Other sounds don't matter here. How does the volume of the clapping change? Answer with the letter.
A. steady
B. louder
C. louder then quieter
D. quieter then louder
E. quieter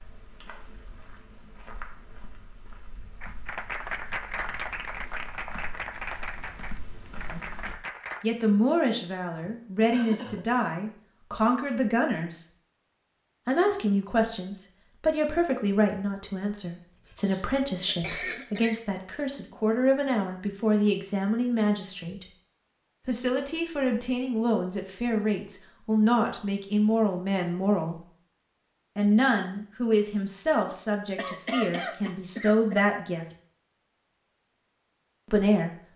E.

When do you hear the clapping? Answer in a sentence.
The clapping can be heard from 3.2 to 8.2 s.